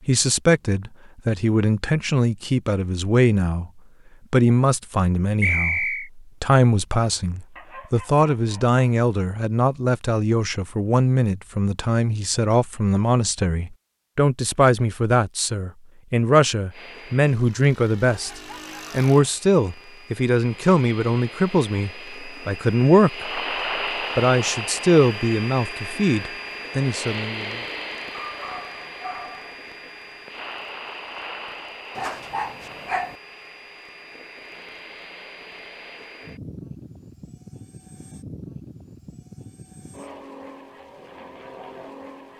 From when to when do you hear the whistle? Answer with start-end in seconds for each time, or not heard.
5.4-6.1.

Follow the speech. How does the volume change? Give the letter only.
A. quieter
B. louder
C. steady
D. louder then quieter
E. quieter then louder
C.